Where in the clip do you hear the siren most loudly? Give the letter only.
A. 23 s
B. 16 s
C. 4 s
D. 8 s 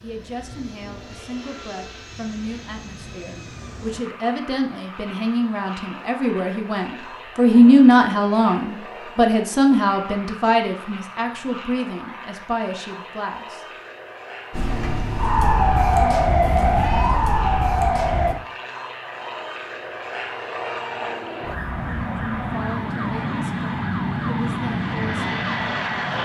B.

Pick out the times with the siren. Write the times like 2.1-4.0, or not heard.
14.5-18.4, 21.4-26.2.